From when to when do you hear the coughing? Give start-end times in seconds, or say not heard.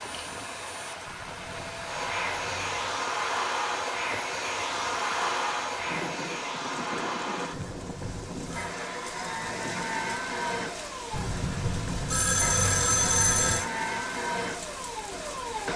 not heard.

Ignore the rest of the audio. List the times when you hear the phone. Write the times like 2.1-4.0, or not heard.
1.1-3.0, 7.5-8.8, 11.1-13.7.